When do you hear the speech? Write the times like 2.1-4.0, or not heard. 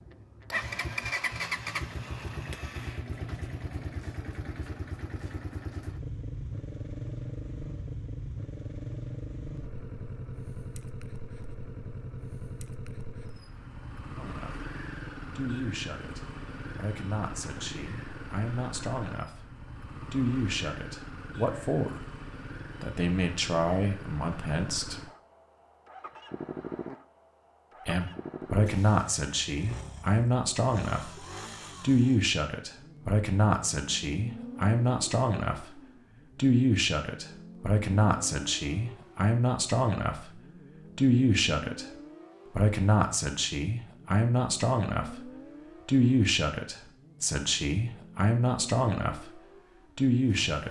14.2-14.7, 15.3-19.5, 20.1-22.1, 22.8-25.0, 27.9-42.0, 42.5-50.6.